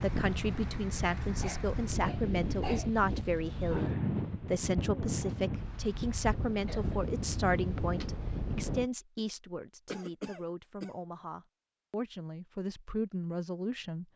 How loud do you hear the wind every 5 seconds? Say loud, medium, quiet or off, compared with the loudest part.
loud, loud, off.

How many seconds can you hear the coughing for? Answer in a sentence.
The coughing can be heard for 3 seconds in total.